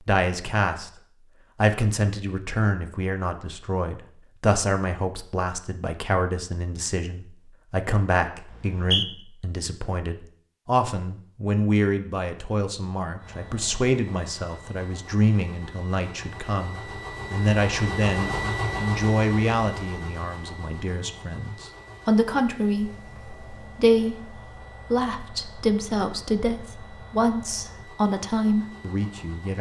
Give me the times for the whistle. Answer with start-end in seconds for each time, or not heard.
8.5-9.1.